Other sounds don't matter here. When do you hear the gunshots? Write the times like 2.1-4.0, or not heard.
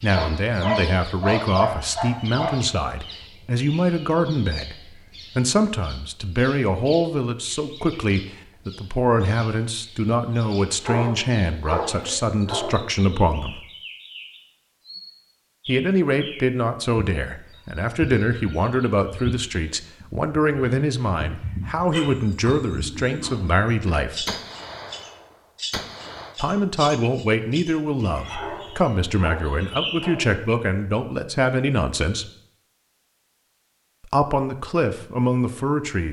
23.2-26.4.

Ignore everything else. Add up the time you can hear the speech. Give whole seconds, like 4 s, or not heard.
30 s.